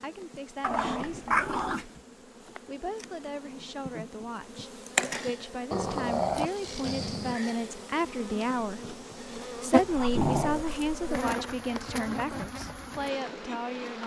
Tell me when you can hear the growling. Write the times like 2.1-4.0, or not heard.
0.6-1.9, 5.7-7.3, 9.8-10.6.